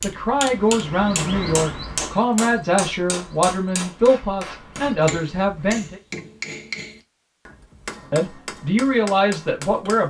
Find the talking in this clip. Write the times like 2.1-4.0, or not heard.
0.0-6.0, 8.1-10.0.